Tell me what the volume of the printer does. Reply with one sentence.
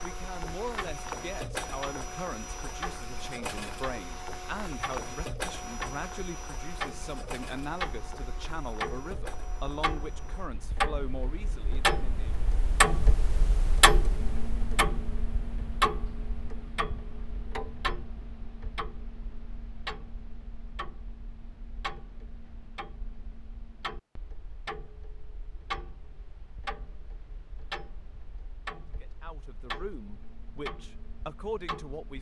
The volume of the printer goes down.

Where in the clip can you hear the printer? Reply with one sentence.
You can hear the printer from 0.0 to 10.5 s.